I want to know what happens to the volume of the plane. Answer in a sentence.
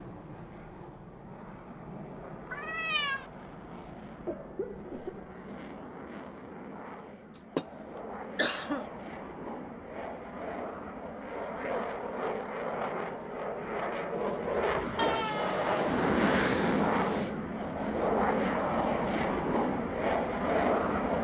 The volume of the plane goes up.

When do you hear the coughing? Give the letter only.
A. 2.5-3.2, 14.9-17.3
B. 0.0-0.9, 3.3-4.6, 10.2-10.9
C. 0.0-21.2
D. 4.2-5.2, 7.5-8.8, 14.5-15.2
D.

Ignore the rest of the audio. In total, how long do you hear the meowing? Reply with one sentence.
You can hear the meowing for 3 seconds altogether.